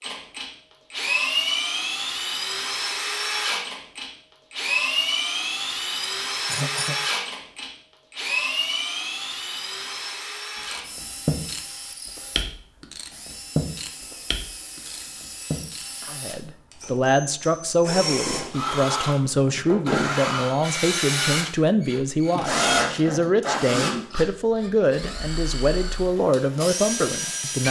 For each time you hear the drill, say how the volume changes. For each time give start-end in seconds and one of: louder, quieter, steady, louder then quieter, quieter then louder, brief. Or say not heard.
0.0-27.6 quieter then louder.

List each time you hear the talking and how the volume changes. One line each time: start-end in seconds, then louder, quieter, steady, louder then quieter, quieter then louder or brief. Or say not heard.
16.1-27.6 steady.